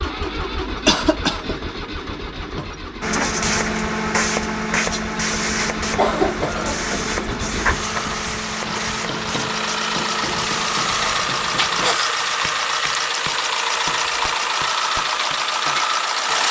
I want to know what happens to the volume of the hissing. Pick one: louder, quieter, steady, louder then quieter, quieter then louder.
quieter.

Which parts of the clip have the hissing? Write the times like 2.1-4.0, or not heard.
3.0-12.2.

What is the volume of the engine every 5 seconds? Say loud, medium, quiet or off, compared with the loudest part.
medium, medium, loud, loud.